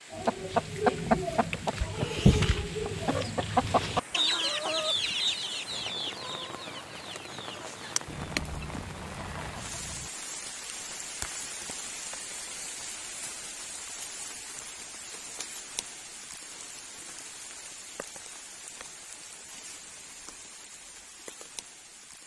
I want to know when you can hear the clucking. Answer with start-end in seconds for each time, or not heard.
0.1-10.1.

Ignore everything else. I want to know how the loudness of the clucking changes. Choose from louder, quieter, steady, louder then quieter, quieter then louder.
quieter.